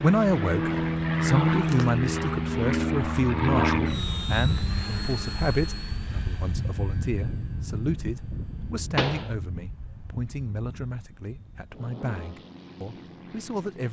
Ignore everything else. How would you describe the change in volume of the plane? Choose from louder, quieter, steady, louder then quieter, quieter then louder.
quieter.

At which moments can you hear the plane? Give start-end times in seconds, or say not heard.
0.0-13.8.